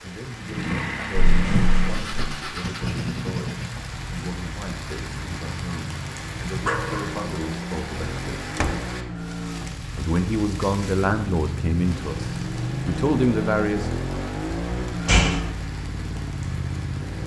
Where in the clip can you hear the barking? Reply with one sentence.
You can hear the barking from 6.7 to 7.2 s.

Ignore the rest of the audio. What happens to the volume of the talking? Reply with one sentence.
The loudness of the talking goes up.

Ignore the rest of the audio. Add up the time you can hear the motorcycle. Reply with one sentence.
The motorcycle can be heard for 17 seconds in total.